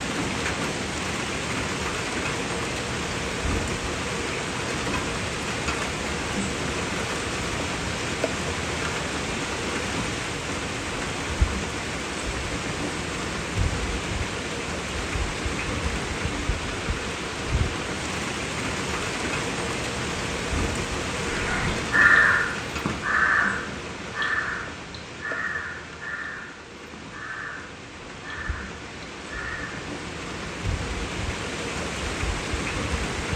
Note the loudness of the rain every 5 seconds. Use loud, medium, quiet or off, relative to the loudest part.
loud, loud, loud, loud, loud, medium, loud.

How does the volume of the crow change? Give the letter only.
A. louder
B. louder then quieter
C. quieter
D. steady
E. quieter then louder
C.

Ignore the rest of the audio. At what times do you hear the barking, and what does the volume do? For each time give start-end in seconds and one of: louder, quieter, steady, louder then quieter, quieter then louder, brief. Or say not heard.
not heard.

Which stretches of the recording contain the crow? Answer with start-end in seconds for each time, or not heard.
21.2-29.9.